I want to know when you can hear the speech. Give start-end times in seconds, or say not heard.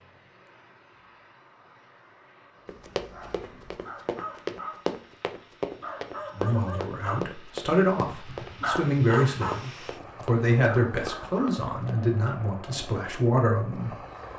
6.3-14.0.